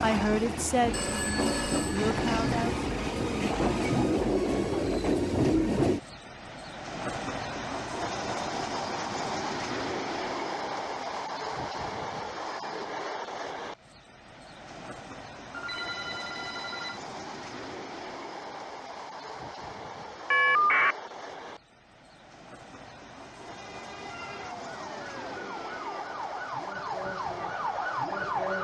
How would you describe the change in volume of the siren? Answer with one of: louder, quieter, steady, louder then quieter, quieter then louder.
louder.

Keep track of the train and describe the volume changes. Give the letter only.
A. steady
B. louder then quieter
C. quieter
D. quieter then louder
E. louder
C.